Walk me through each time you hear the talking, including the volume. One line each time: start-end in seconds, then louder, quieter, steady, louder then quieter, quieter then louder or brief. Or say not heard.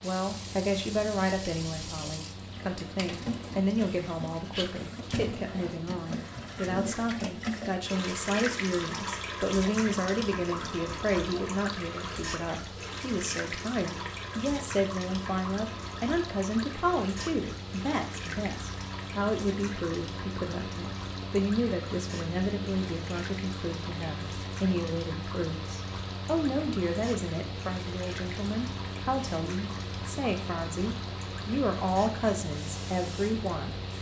0.0-33.8 steady.